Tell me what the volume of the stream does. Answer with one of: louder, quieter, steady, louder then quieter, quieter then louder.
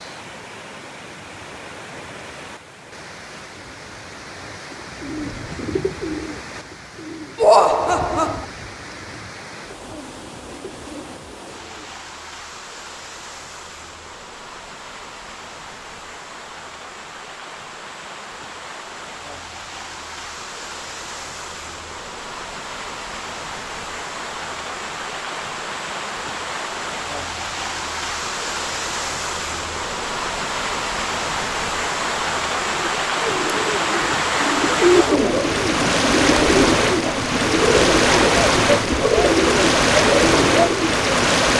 louder.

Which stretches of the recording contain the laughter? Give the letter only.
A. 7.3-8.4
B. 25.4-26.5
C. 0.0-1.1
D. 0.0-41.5
A.